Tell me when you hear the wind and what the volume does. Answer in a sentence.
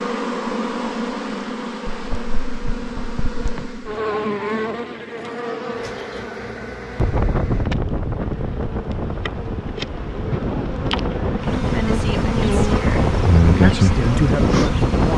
The wind can be heard from 7.0 to 15.1 s, getting quieter then louder.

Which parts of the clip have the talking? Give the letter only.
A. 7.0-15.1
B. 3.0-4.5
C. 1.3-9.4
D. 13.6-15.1
D.